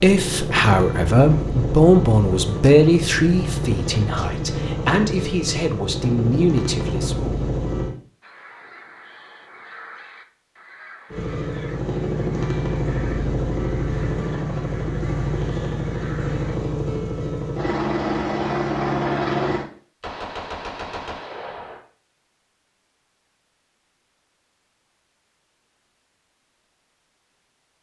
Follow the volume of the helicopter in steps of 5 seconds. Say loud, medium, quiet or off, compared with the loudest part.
loud, loud, loud, loud, off, off.